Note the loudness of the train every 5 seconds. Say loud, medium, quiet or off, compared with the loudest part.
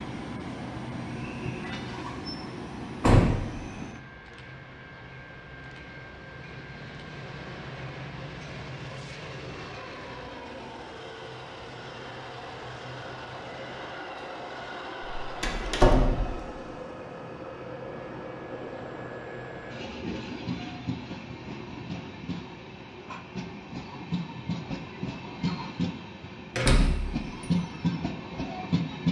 medium, medium, medium, medium, medium, loud.